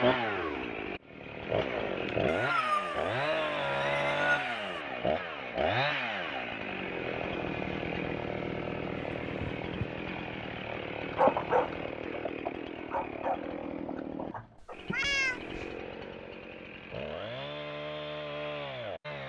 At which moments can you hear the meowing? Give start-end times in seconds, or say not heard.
2.2-4.8, 9.2-9.7, 14.6-15.8.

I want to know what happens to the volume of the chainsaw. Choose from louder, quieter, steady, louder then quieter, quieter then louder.
quieter.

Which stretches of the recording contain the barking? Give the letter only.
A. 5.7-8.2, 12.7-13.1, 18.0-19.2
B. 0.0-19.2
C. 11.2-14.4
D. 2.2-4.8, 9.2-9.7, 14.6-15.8
C.